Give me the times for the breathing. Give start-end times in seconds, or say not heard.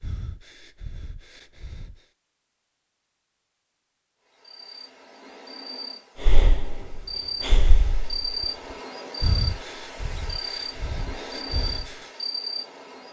0.0-2.0, 6.2-11.9.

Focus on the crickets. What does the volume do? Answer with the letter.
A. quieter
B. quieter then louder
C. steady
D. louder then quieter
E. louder
E.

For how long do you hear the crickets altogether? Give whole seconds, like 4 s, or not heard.
9 s.